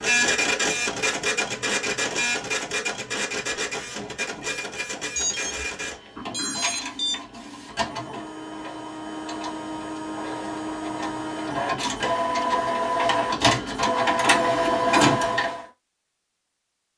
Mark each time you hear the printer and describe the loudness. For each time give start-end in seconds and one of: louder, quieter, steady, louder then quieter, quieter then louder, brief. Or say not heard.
0.0-15.7 quieter then louder.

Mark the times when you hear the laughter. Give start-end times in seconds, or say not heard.
not heard.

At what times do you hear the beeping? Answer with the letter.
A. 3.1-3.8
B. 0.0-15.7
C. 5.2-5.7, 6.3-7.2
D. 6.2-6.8
C.